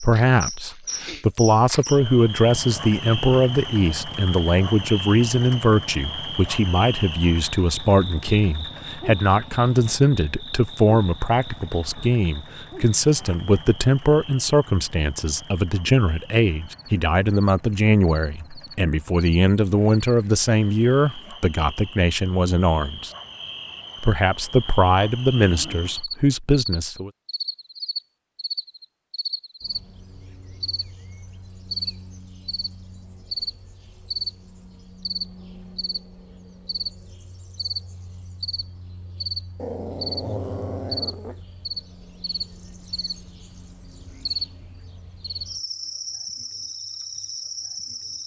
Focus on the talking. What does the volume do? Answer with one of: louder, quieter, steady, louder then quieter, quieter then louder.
steady.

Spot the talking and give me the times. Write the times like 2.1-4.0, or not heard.
0.0-23.1, 24.0-27.1.